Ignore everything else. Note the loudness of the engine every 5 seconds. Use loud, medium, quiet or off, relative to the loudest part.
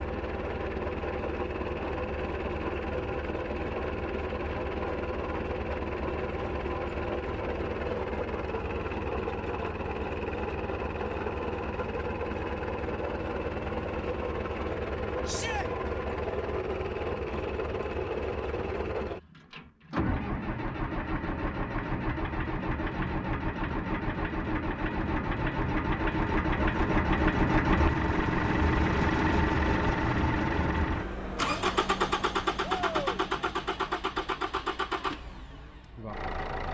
medium, medium, medium, medium, medium, loud, loud, medium.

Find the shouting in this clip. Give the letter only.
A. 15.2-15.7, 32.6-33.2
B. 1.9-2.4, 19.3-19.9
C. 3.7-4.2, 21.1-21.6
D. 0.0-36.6
A.